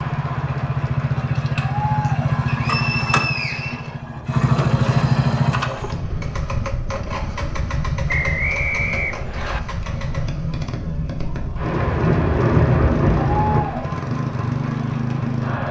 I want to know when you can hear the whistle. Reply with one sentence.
The whistle can be heard from 2.5 to 4.0 s and from 8.1 to 9.6 s.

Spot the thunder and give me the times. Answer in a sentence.
You can hear the thunder from 11.6 to 13.6 s.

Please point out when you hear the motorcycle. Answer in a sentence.
You can hear the motorcycle from 0.0 to 15.6 s.